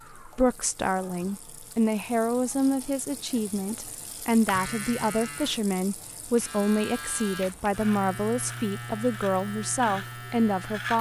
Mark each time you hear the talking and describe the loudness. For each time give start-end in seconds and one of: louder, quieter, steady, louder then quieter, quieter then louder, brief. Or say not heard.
0.1-10.9 steady.